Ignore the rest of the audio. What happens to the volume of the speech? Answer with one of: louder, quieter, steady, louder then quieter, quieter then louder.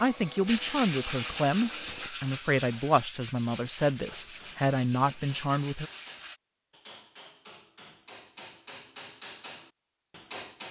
steady.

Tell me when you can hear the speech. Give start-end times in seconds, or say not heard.
0.0-5.9.